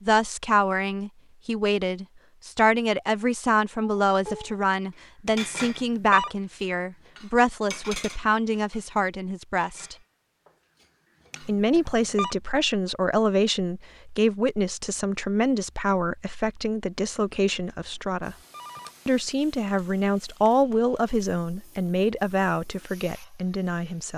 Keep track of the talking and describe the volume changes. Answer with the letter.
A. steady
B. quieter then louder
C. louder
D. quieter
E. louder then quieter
A.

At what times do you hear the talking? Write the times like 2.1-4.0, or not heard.
0.0-9.9, 11.4-18.4, 19.1-24.1.